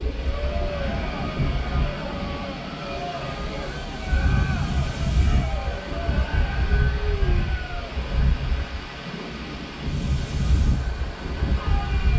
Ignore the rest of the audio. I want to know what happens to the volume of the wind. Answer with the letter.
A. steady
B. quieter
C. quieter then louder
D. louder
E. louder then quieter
A.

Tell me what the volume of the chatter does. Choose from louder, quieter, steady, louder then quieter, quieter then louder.
quieter.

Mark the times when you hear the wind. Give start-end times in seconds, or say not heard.
0.0-12.1.